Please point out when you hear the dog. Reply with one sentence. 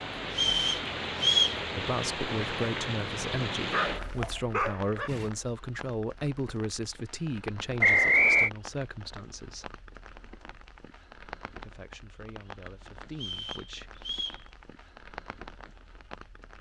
You can hear the dog from 3.7 to 5.3 s.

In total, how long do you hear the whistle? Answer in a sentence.
You can hear the whistle for 3 seconds altogether.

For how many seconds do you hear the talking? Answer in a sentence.
You can hear the talking for 10 seconds altogether.